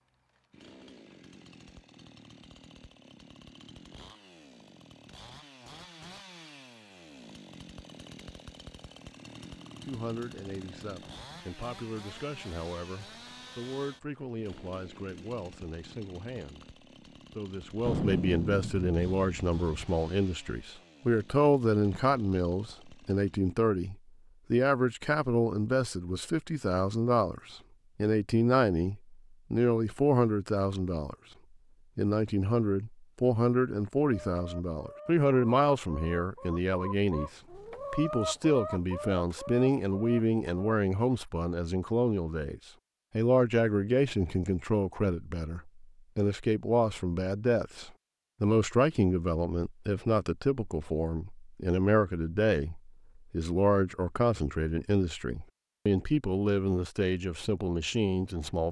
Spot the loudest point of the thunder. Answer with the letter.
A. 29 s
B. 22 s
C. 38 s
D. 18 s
D.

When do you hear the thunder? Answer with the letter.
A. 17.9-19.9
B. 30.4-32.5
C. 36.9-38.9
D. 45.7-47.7
A.